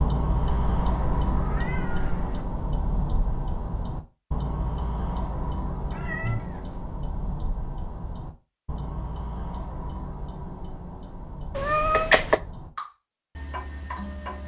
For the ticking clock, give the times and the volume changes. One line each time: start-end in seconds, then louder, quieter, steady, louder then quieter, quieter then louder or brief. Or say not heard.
0.0-14.4 quieter.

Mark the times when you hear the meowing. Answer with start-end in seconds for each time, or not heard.
0.4-2.5, 5.9-6.8, 11.6-12.4.